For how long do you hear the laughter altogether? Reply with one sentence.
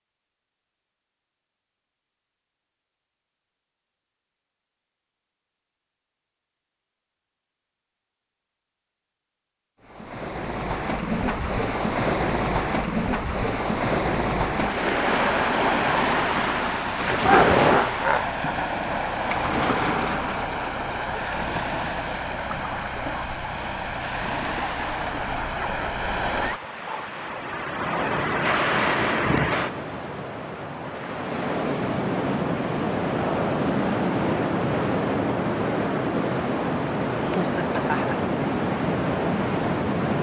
You can hear the laughter for 2 seconds altogether.